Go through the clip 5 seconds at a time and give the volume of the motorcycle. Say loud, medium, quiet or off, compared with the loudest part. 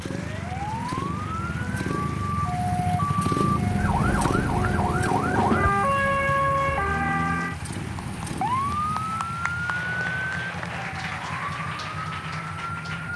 loud, medium, medium.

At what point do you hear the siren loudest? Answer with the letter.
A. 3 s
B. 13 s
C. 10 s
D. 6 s
D.